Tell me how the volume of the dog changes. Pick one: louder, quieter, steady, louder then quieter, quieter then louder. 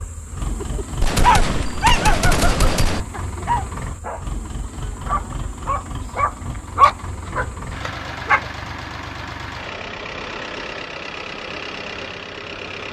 quieter then louder.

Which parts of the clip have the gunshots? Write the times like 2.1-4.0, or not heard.
1.0-3.0.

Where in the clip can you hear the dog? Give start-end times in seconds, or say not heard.
0.6-8.4.